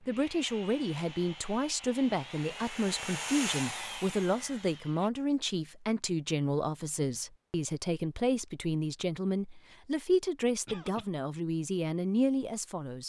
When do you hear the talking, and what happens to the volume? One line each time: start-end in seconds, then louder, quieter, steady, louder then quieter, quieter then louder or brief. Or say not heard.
0.1-13.0 steady.